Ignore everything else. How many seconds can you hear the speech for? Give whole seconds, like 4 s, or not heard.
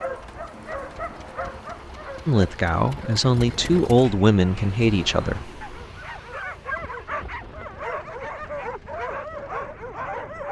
3 s.